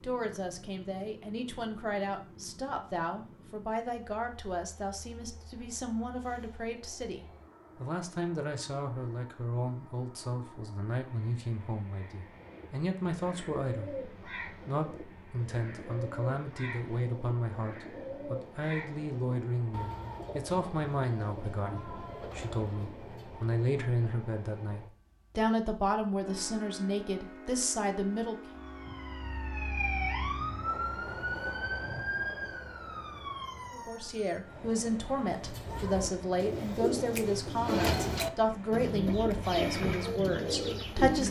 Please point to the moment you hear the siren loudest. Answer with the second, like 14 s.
30 s.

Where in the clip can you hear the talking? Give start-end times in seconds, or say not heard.
0.0-28.6, 33.7-41.2.